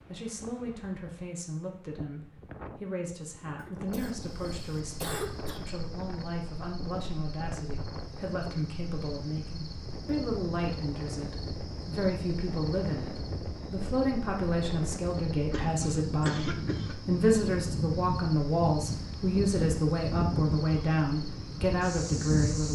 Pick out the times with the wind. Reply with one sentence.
The wind can be heard from 0.0 to 22.7 s.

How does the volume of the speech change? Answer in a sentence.
The volume of the speech goes up.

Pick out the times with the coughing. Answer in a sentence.
You can hear the coughing from 3.5 to 5.6 s and from 15.5 to 16.9 s.